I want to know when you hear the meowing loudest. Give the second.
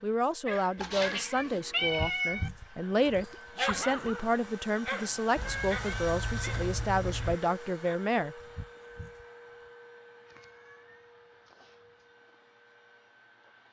2 s.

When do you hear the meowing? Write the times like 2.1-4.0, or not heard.
0.8-2.5, 5.3-7.3, 10.2-12.1.